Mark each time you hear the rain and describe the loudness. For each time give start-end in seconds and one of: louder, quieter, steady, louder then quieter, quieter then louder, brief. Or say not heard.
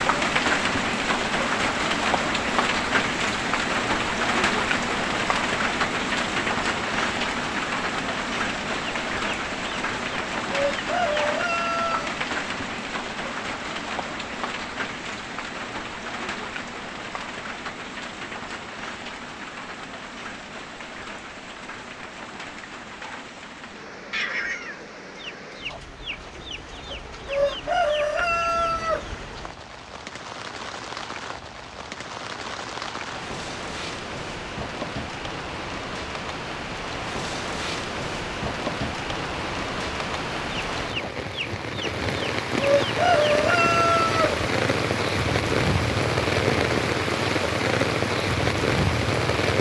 0.0-49.5 quieter then louder.